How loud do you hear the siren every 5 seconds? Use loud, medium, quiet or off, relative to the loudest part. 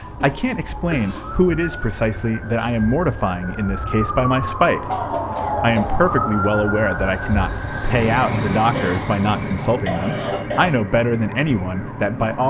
medium, loud, medium.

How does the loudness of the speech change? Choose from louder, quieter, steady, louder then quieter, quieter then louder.
steady.